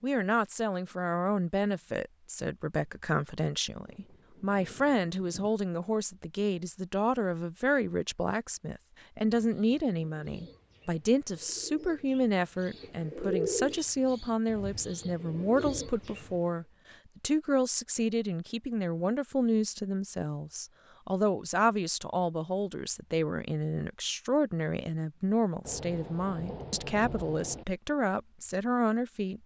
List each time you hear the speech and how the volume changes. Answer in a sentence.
You can hear the speech from 0.0 to 29.4 s, at a steady volume.